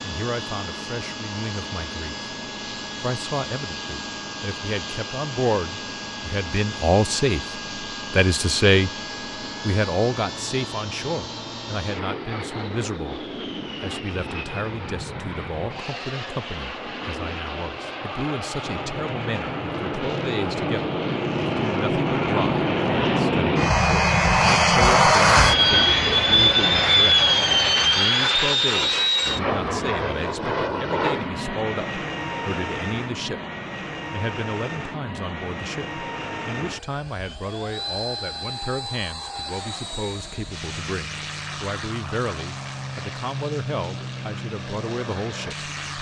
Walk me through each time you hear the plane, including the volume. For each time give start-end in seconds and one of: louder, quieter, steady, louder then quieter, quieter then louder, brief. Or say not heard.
0.0-45.9 louder then quieter.